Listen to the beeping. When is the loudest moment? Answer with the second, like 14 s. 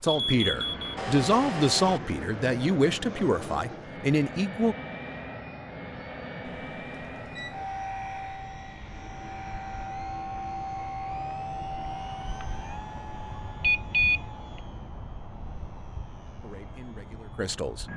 14 s.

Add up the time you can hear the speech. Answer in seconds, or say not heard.
6 s.